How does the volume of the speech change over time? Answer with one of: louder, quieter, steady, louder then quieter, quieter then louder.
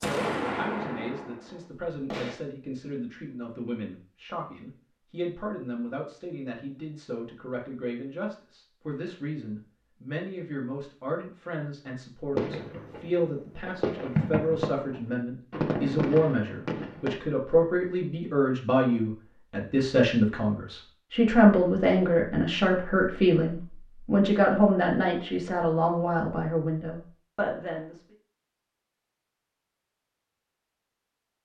louder.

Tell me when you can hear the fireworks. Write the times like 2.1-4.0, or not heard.
0.0-2.4, 12.3-17.2.